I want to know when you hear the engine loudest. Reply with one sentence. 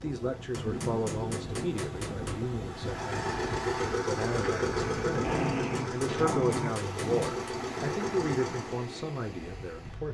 The loudest moment of the engine is at 4 seconds.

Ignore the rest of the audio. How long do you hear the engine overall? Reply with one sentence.
The engine can be heard for 6 seconds in total.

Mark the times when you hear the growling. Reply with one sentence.
The growling can be heard from 0.6 to 1.6 s and from 5.2 to 7.2 s.